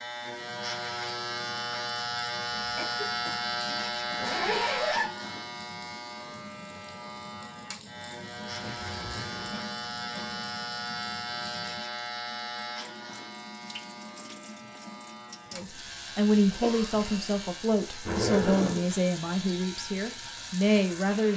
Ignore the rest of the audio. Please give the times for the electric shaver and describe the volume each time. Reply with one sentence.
The electric shaver can be heard from 0.0 to 21.3 s, getting quieter.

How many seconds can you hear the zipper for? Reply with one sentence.
The zipper can be heard for 3 seconds in total.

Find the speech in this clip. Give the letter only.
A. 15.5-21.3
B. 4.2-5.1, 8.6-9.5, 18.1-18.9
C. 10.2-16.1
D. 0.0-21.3
A.